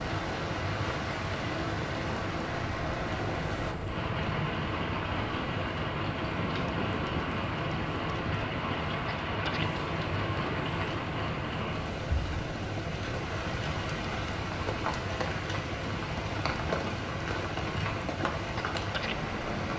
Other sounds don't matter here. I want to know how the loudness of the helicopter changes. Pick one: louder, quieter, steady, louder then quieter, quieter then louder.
steady.